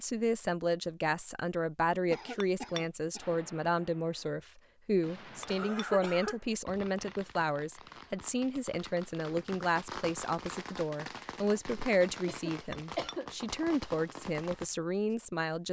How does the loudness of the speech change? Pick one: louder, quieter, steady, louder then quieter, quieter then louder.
steady.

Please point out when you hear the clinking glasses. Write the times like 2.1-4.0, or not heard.
2.4-2.9, 5.4-5.8, 12.7-13.2.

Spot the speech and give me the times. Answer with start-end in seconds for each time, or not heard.
0.0-15.6.